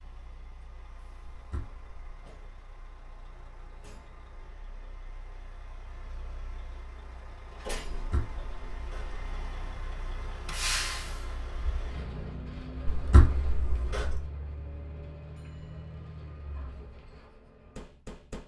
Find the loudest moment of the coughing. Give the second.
13 s.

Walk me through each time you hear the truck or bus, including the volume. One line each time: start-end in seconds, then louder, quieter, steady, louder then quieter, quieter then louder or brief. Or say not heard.
0.0-18.4 louder then quieter.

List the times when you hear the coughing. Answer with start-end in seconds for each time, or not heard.
1.3-2.2, 7.9-9.2, 12.8-14.2.